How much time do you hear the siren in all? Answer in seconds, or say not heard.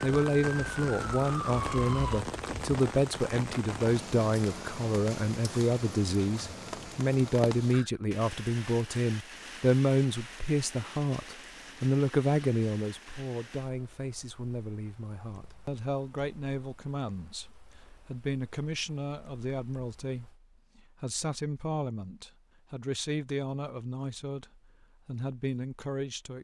2 s.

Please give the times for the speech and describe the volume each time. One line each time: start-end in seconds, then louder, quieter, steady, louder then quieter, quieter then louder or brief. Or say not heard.
0.0-26.3 quieter.